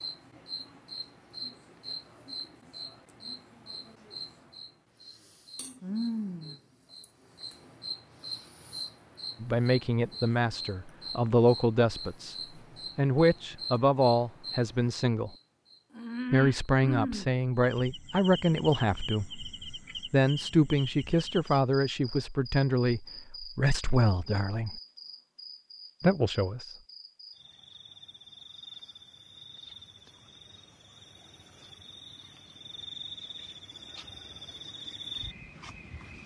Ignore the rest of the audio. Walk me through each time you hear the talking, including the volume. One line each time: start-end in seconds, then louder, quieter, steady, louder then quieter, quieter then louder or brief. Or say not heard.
9.4-12.3 brief
12.9-15.3 brief
16.3-24.8 steady
26.0-26.6 brief.